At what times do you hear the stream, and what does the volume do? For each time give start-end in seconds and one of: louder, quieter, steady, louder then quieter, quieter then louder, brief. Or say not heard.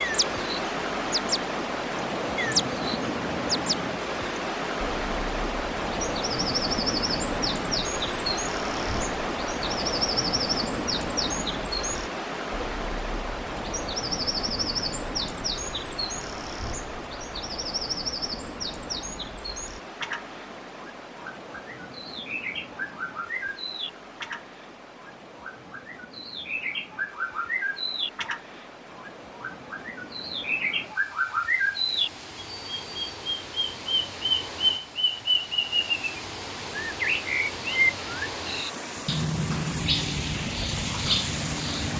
0.0-41.9 quieter then louder.